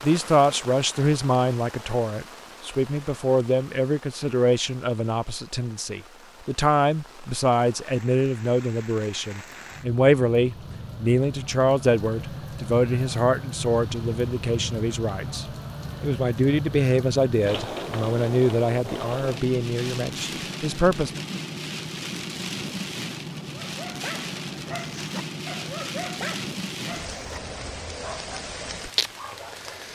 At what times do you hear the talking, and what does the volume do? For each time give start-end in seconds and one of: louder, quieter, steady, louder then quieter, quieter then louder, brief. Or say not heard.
0.0-21.2 steady.